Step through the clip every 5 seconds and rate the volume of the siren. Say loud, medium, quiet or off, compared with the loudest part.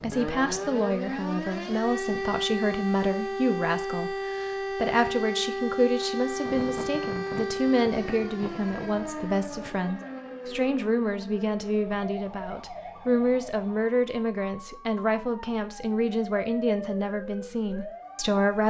loud, loud, medium, medium.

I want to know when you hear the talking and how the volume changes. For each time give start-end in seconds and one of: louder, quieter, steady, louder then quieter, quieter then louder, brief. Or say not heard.
0.0-18.6 steady.